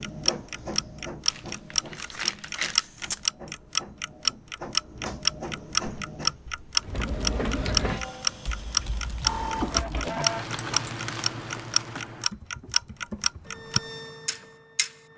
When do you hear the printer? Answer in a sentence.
The printer can be heard from 0.0 to 10.9 s and from 13.4 to 15.1 s.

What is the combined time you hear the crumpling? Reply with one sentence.
The crumpling can be heard for 4 seconds in total.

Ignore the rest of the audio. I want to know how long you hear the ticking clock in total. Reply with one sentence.
You can hear the ticking clock for 15 seconds altogether.